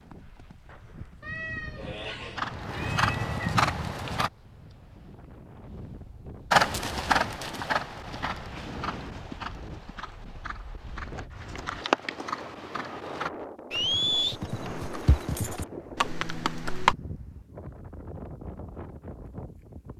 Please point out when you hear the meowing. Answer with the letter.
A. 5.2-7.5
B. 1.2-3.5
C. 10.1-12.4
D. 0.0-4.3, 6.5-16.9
B.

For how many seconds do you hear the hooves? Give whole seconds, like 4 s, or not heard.
15 s.